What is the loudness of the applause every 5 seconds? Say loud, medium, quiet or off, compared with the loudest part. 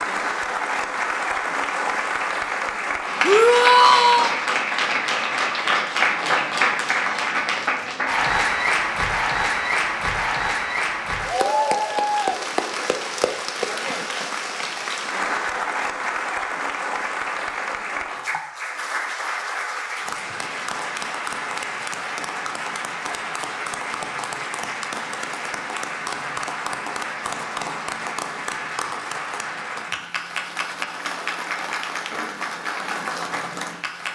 loud, loud, loud, medium, medium, medium, medium.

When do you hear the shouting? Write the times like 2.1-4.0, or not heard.
3.2-4.4.